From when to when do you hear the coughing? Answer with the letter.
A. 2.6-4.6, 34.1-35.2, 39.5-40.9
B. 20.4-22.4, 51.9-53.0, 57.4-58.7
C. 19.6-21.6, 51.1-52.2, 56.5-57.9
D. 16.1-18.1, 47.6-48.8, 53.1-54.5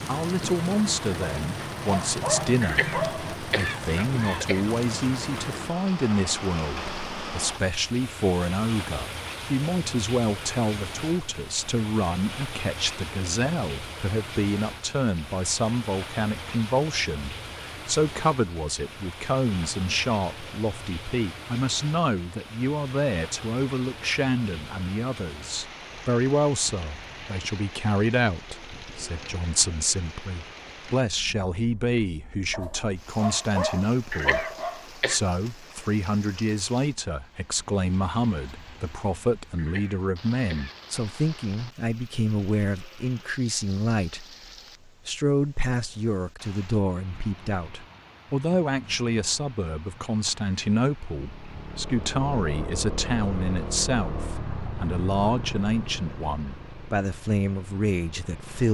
A.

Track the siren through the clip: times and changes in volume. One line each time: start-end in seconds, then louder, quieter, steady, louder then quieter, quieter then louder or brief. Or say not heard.
not heard.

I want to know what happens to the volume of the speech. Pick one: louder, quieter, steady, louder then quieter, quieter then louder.
steady.